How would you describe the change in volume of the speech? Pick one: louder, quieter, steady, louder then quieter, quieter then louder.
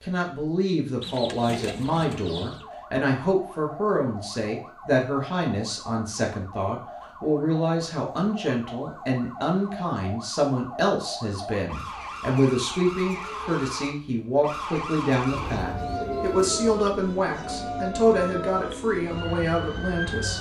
steady.